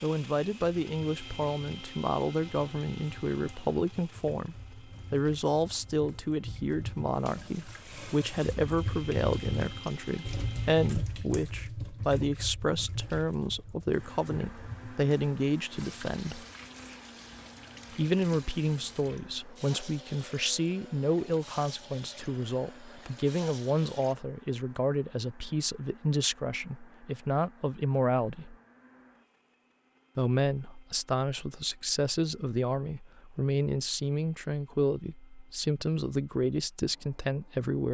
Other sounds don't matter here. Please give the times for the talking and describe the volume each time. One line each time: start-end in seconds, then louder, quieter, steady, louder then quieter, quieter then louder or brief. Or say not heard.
0.0-16.4 steady
17.9-28.6 steady
30.1-37.9 steady.